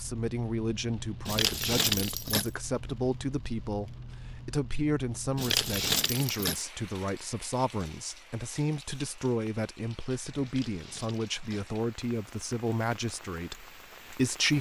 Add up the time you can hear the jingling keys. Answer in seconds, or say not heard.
4 s.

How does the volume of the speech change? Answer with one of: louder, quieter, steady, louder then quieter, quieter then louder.
steady.